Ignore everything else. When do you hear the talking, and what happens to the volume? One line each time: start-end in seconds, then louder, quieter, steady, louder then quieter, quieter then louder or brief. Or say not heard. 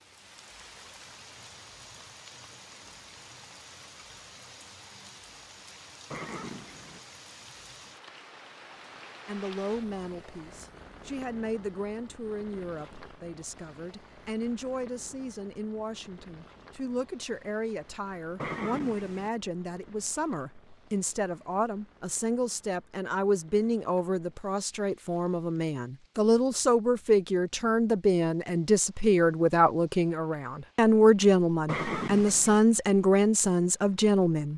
9.2-34.5 louder.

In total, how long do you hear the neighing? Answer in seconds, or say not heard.
3 s.